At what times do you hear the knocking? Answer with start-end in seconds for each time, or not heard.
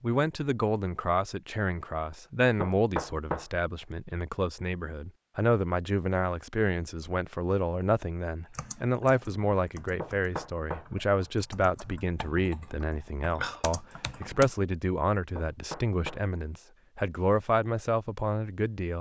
2.6-3.5, 10.0-10.8, 15.3-16.2.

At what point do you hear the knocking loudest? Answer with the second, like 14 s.
3 s.